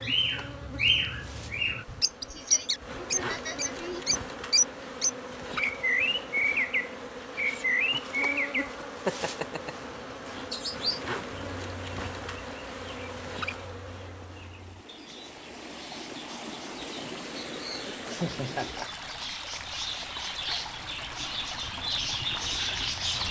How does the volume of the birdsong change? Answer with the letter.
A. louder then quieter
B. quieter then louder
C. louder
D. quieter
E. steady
B.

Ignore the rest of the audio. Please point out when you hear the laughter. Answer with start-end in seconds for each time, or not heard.
1.9-4.0, 18.1-19.1.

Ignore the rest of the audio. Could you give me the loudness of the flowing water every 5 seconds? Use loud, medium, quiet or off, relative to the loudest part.
off, off, medium, loud, loud.